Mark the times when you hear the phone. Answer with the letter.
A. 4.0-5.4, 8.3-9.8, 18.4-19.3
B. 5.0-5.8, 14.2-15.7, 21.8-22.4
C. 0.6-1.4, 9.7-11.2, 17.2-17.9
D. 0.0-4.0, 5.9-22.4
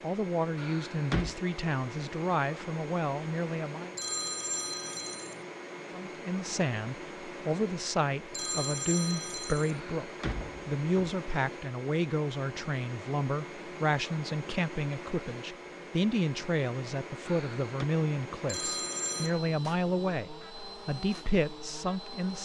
A.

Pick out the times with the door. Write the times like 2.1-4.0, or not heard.
0.6-1.4, 9.7-11.2, 17.2-17.9.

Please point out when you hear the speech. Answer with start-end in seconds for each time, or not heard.
0.0-4.0, 5.9-22.4.